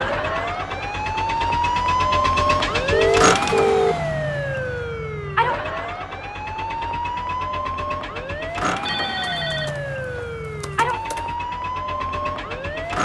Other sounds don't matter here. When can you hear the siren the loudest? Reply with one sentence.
The loudest moment of the siren is at 3 seconds.